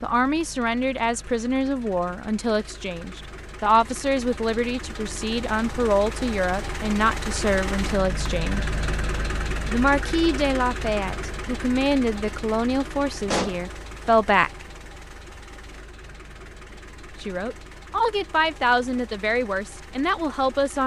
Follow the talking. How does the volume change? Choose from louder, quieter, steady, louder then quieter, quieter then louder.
steady.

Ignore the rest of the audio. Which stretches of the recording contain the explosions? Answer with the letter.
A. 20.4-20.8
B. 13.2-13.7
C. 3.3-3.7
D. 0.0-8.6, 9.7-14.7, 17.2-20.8
B.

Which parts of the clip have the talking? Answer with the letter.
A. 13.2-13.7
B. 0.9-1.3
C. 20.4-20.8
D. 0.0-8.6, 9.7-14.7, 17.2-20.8
D.